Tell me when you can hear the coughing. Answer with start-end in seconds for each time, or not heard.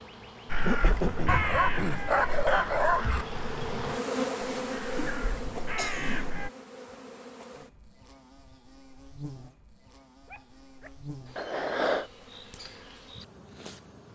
0.7-2.0, 5.0-6.3, 11.3-12.1.